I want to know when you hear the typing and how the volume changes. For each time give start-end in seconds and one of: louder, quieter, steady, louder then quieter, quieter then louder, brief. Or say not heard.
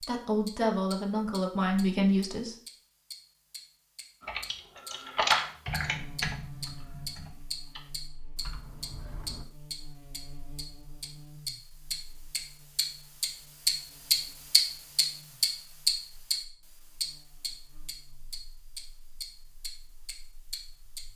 4.2-9.4 quieter.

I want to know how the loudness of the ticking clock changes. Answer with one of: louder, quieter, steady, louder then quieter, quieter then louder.
louder then quieter.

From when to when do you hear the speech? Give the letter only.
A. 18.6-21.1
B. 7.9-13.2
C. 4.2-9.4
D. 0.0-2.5
D.